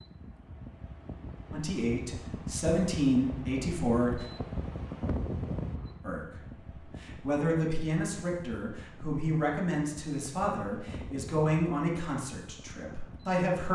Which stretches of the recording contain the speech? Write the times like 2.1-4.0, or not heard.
1.5-4.2, 6.0-13.7.